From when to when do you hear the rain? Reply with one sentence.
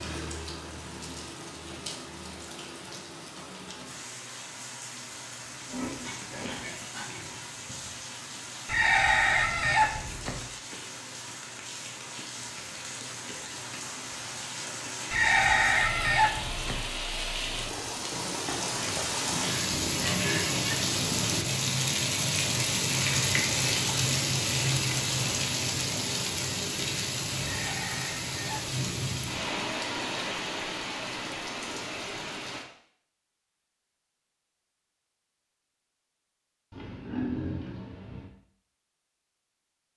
The rain can be heard from 0.0 to 32.6 s.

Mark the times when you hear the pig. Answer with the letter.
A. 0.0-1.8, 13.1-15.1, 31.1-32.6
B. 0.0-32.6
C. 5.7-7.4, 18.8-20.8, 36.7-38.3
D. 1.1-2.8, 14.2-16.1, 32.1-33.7
C.